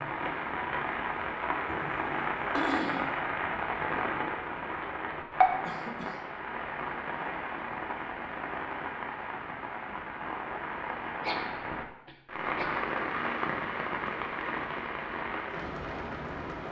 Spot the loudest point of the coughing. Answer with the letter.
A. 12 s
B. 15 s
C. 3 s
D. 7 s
C.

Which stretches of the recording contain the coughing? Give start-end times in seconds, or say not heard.
1.6-3.2, 5.7-6.2, 11.2-12.8.